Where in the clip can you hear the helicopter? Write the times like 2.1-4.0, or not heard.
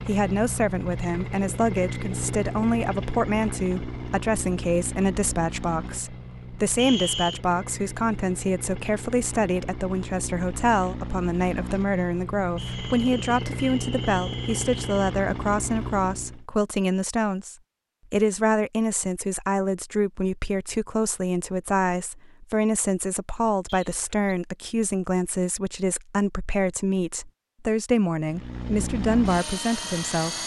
0.0-16.4, 28.2-30.4.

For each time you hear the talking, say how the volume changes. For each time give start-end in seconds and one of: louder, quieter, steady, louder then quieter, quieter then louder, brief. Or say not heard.
0.1-30.4 steady.